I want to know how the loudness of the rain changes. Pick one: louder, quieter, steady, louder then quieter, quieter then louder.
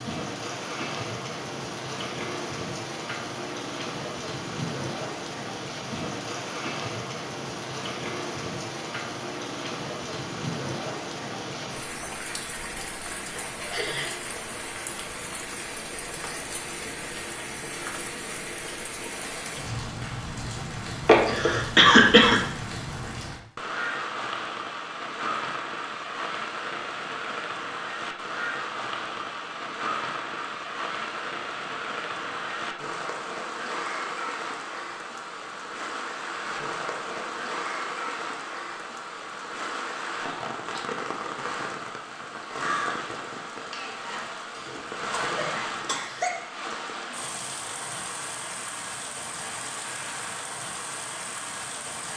steady.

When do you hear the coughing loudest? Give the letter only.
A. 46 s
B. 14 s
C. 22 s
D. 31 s
C.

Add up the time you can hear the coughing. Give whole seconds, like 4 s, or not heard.
4 s.